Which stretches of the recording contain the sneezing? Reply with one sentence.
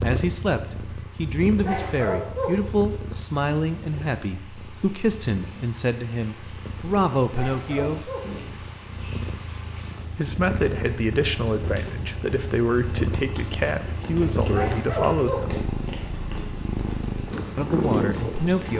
You can hear the sneezing from 1.6 to 2.6 s, from 7.3 to 8.3 s and from 14.5 to 15.5 s.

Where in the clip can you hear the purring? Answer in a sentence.
You can hear the purring from 0.0 to 18.7 s.